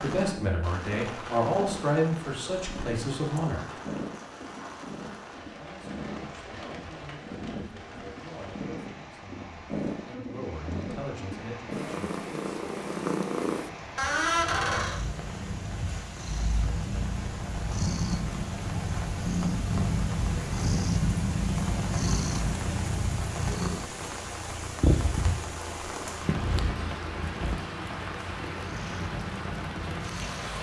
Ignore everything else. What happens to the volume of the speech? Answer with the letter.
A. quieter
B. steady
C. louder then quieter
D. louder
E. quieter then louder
E.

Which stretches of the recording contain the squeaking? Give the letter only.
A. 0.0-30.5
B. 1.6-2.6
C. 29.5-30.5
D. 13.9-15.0
D.